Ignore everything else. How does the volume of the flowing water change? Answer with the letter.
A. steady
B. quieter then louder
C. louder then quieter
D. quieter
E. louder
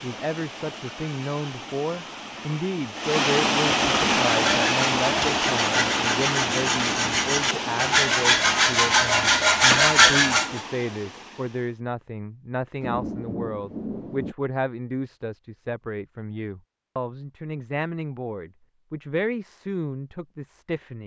C.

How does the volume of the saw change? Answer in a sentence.
The loudness of the saw goes up.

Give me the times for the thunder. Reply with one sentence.
You can hear the thunder from 12.8 to 14.3 s.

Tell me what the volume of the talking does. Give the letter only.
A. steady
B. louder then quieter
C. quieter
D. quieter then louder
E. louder
A.